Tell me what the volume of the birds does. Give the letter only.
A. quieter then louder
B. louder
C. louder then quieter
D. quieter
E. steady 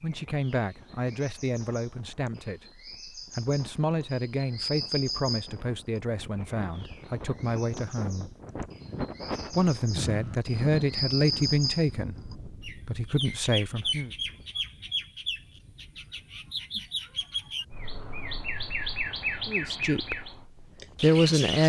B.